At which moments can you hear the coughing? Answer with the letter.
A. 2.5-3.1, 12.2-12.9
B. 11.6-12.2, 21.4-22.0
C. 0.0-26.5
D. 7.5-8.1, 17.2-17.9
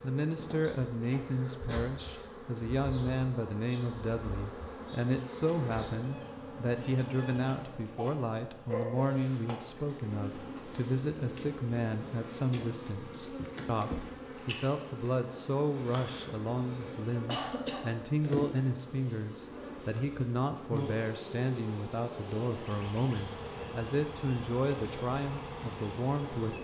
D.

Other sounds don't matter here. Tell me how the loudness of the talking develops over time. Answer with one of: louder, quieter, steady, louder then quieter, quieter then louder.
steady.